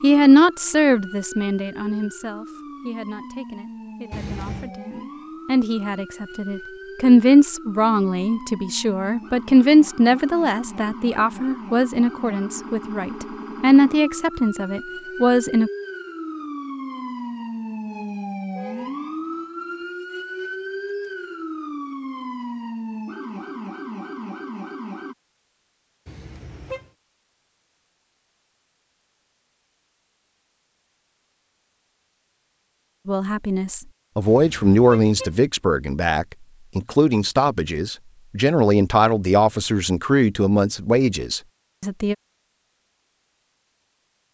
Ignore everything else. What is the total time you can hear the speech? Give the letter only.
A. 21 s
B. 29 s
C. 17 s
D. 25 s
D.